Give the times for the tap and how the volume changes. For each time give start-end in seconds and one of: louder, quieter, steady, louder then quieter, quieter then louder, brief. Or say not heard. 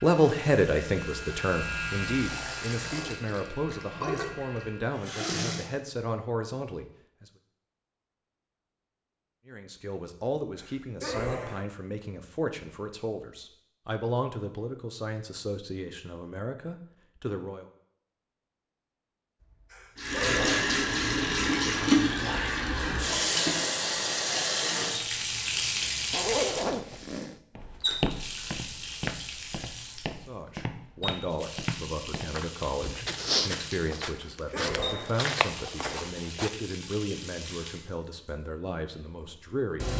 0.2-5.7 louder
19.9-39.9 quieter.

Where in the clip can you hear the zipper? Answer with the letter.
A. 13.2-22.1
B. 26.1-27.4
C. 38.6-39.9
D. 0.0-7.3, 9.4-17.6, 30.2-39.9
B.